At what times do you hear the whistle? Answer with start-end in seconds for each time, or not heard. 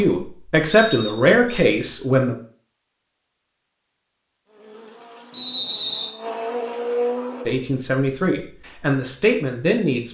0.7-1.4, 5.3-6.1.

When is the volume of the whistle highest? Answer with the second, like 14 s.
6 s.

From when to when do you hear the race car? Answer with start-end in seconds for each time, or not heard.
4.5-7.6.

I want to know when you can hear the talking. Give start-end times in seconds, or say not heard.
0.0-2.4, 7.5-10.0.